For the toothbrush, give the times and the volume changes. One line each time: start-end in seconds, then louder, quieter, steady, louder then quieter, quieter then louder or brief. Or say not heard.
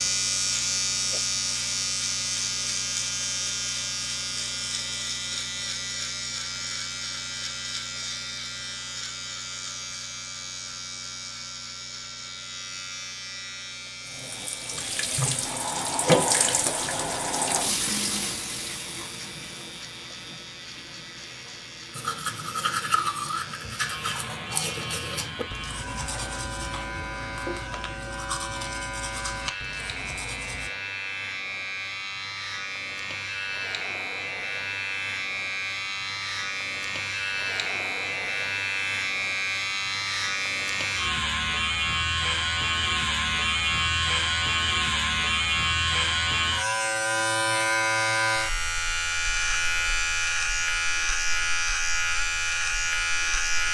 21.9-30.7 quieter.